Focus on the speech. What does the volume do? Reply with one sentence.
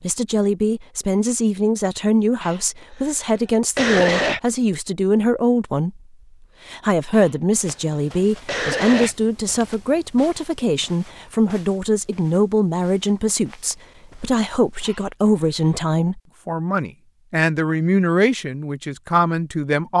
The loudness of the speech stays about the same.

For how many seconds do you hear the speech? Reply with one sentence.
You can hear the speech for 19 seconds altogether.